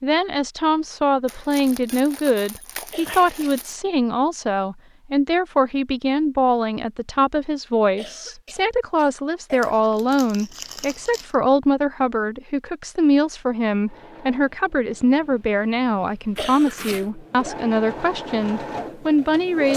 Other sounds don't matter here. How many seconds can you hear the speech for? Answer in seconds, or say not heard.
20 s.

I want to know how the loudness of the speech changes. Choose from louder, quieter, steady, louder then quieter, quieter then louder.
steady.